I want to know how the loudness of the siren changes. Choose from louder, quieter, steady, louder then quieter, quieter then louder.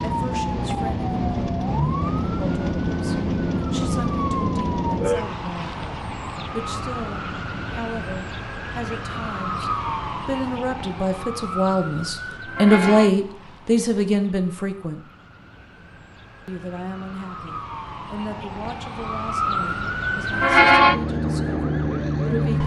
quieter then louder.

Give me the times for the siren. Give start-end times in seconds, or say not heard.
0.0-22.6.